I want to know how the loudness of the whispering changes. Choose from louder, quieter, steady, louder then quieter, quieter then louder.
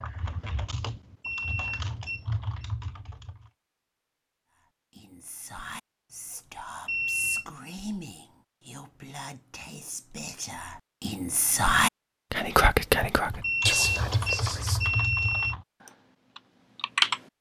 louder.